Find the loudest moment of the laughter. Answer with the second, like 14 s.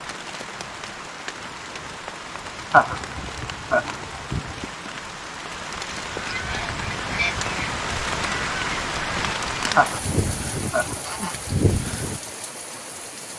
3 s.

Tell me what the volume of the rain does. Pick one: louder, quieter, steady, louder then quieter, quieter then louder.
louder then quieter.